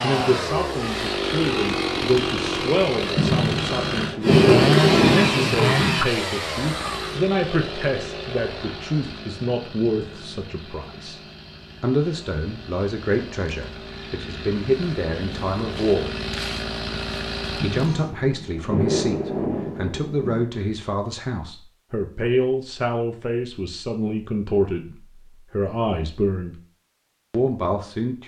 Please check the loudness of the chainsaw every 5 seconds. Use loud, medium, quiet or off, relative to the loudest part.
loud, loud, quiet, medium, off, off.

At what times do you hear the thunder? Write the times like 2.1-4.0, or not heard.
3.1-6.0, 17.6-20.4.